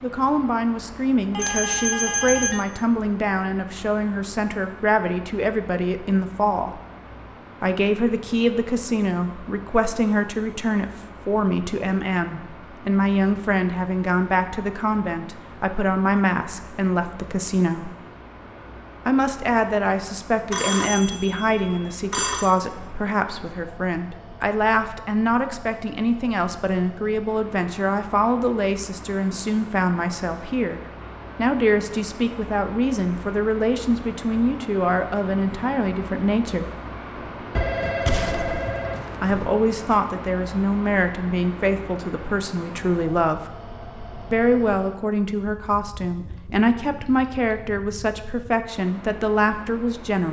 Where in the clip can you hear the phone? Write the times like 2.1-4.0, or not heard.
1.3-2.6, 20.5-22.6, 37.5-39.5.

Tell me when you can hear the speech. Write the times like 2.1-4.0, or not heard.
0.0-6.8, 7.6-17.9, 19.1-36.6, 39.2-43.4, 44.3-50.2.